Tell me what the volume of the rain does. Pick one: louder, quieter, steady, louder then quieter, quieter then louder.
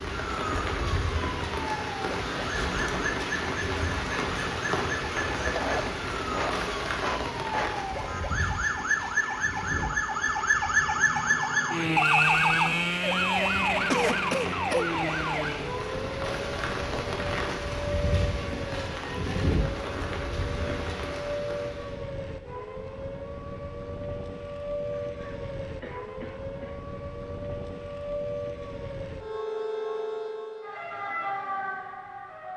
quieter then louder.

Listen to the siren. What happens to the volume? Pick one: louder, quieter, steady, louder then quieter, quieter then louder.
louder then quieter.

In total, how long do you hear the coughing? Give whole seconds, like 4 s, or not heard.
5 s.